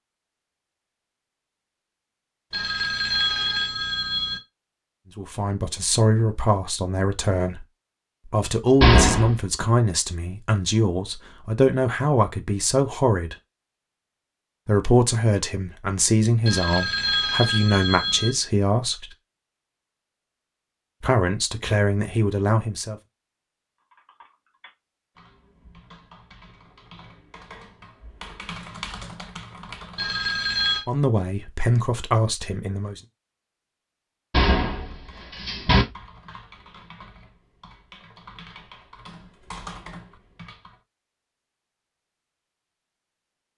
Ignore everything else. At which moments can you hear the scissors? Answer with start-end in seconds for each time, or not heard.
not heard.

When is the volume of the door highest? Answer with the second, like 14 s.
9 s.